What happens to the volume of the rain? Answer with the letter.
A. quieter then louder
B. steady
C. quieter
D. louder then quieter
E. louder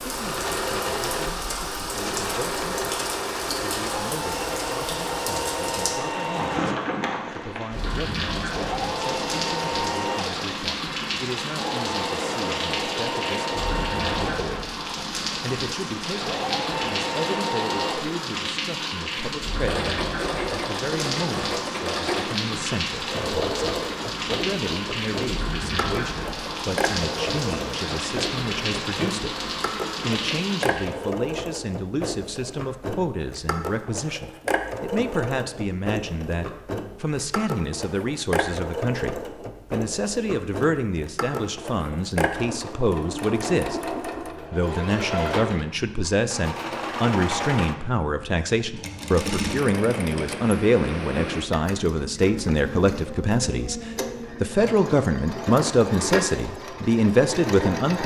B.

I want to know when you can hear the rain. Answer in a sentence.
The rain can be heard from 0.0 to 30.9 s.